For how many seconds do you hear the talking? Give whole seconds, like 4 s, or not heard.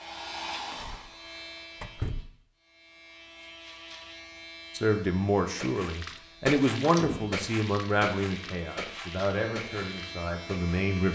6 s.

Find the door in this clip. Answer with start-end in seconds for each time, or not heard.
0.7-2.2, 6.8-7.3.